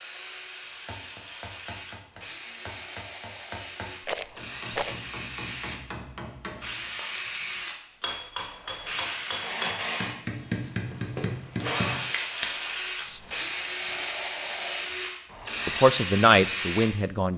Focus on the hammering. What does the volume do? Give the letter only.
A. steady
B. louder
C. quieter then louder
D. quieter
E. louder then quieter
B.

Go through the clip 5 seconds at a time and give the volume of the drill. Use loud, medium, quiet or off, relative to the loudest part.
medium, loud, loud, loud.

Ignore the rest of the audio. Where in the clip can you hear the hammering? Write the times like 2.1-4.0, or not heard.
0.8-12.6.